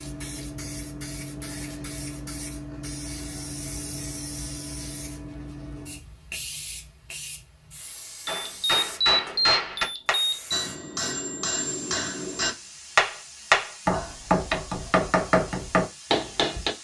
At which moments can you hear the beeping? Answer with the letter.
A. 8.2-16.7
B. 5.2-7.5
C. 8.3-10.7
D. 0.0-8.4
C.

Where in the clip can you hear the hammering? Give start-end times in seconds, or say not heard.
8.2-16.7.